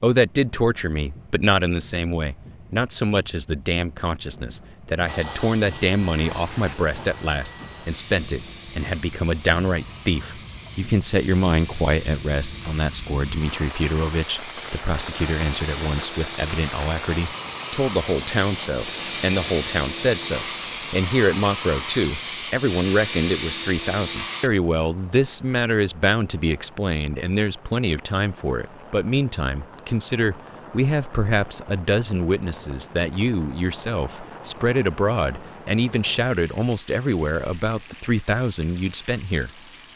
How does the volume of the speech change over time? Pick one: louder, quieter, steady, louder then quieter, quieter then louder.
steady.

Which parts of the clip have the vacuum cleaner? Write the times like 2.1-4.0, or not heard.
5.0-24.5.